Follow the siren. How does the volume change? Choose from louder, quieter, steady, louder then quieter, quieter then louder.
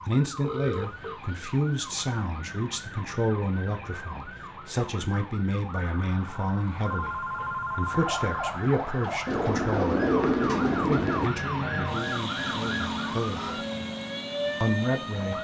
louder.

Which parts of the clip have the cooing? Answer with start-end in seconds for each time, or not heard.
9.2-11.3.